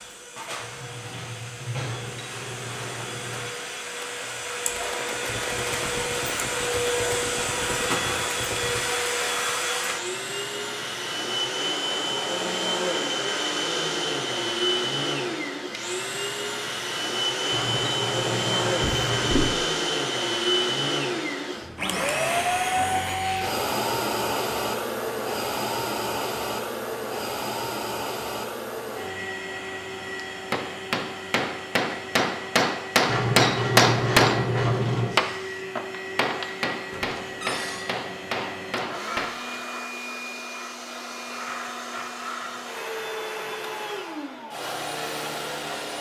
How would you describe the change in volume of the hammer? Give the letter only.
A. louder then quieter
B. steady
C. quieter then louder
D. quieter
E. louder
A.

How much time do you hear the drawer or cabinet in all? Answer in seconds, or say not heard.
3 s.